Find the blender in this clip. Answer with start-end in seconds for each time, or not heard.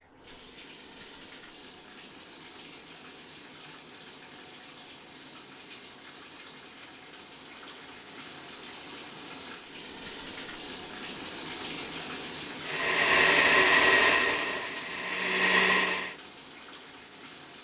12.7-16.1.